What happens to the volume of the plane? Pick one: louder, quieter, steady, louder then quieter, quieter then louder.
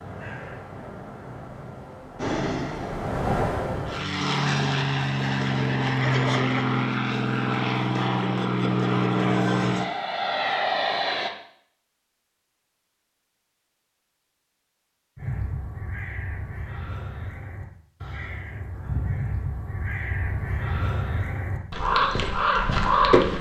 louder.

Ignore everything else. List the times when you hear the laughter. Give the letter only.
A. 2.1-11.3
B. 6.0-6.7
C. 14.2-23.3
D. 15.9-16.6
B.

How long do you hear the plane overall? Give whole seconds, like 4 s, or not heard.
9 s.